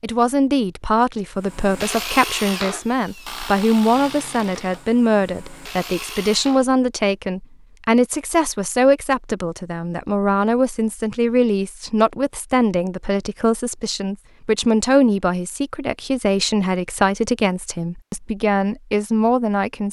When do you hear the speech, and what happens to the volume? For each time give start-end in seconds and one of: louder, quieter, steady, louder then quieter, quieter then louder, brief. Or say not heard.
0.0-19.8 steady.